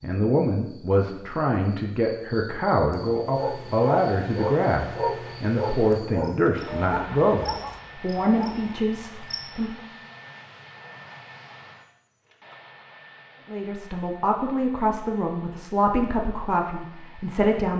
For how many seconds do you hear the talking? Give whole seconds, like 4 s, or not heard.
14 s.